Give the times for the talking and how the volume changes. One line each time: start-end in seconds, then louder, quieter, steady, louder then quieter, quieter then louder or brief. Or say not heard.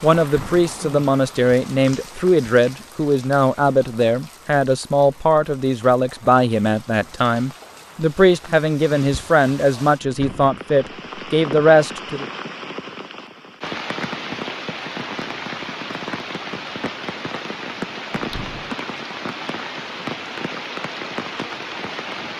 0.0-12.2 steady.